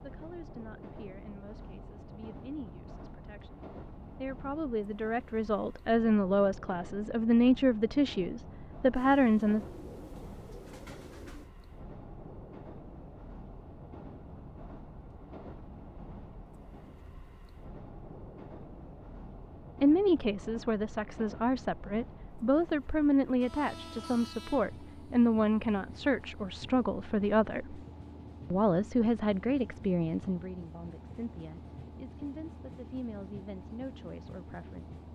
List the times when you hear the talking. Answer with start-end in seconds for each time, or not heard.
0.0-9.6, 19.8-27.8, 28.5-35.0.